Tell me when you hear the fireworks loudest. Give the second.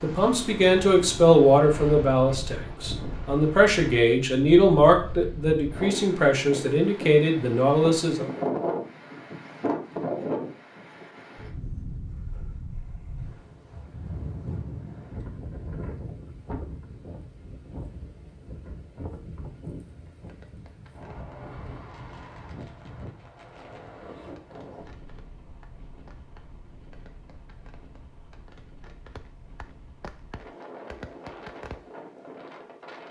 31 s.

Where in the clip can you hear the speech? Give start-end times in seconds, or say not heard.
0.0-8.3.